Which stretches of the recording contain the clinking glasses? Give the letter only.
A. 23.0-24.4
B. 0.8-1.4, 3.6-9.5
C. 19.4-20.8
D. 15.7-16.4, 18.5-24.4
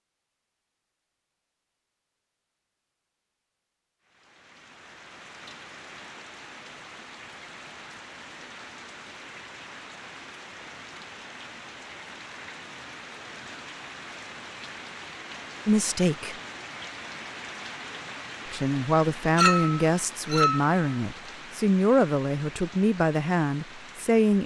C.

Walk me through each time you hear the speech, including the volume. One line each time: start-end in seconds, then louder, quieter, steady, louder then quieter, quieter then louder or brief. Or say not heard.
15.7-16.4 brief
18.5-24.4 steady.